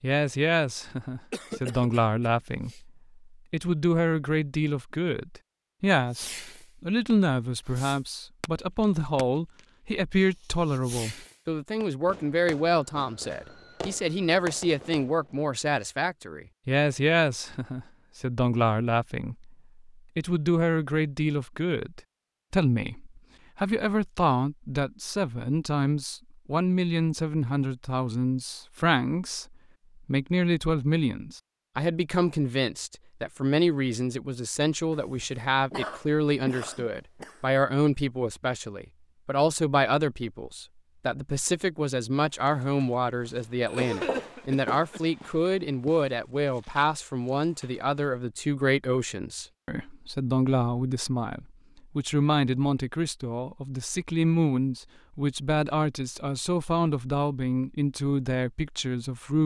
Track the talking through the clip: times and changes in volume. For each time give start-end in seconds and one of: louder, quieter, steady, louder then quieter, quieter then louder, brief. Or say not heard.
0.0-59.4 steady.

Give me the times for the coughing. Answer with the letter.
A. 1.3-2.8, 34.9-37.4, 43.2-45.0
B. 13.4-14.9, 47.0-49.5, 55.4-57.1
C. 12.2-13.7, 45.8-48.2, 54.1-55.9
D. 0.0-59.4
A.